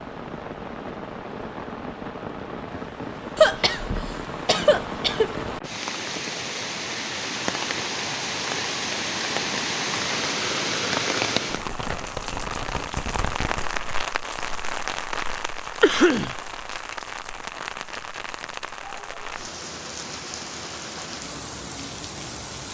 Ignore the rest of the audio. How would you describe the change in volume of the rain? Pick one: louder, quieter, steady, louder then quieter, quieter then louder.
louder then quieter.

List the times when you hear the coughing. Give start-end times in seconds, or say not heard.
3.4-5.3, 15.8-16.4.